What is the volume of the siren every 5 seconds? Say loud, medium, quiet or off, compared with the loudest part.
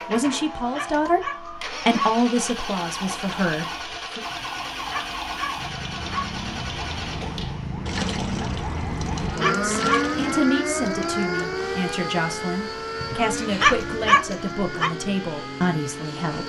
medium, loud, loud, medium.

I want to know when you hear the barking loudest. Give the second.
14 s.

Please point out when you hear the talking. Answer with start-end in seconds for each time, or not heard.
0.1-4.2, 9.3-16.4.